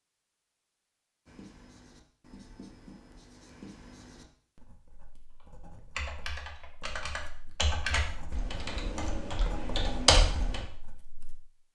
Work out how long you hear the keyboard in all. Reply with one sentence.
The keyboard can be heard for 5 seconds in total.